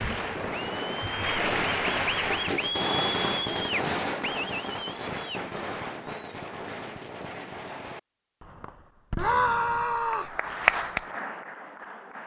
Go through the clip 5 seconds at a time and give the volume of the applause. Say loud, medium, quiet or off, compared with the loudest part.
loud, off, loud.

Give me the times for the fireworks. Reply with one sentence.
You can hear the fireworks from 0.0 to 10.1 s.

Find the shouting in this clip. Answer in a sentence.
You can hear the shouting from 9.2 to 10.3 s.